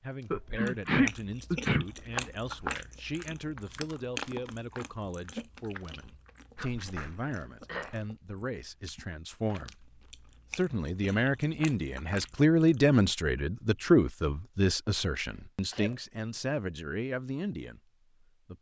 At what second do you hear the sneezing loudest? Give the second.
1 s.